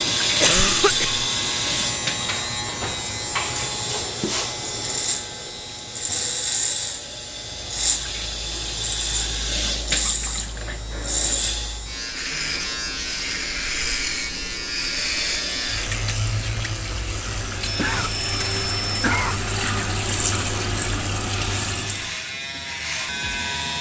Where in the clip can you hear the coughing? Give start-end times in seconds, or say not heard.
0.4-1.2, 17.6-19.4.